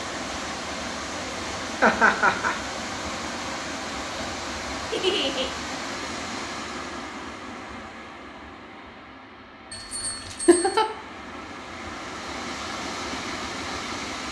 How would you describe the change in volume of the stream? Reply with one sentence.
The loudness of the stream goes down, then up.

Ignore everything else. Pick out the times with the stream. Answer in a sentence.
The stream can be heard from 0.0 to 14.2 s.